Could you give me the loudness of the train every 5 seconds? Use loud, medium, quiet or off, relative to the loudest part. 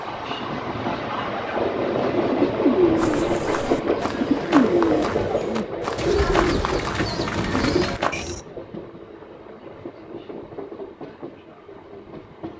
loud, medium, quiet.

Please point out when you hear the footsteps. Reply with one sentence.
You can hear the footsteps from 3.0 to 8.2 s.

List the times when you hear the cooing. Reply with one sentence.
The cooing can be heard from 2.1 to 8.4 s.